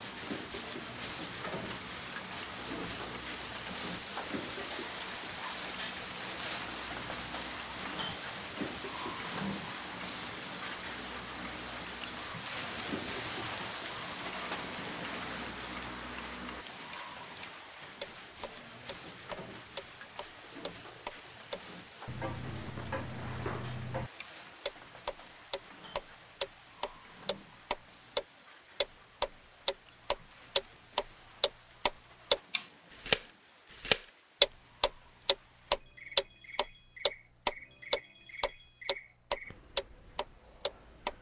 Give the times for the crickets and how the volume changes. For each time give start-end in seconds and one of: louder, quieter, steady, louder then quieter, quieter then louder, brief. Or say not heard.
0.0-41.1 quieter.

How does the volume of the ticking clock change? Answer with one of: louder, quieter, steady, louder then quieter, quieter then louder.
louder.